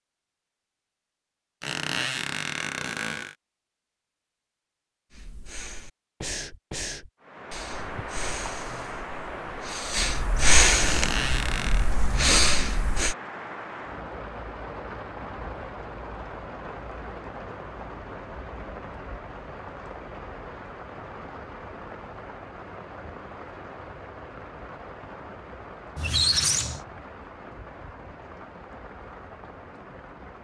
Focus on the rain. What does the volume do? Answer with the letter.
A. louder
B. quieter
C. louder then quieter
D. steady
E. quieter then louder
B.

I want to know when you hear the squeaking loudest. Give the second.
26 s.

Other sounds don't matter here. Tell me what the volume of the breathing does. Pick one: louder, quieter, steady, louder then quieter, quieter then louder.
quieter then louder.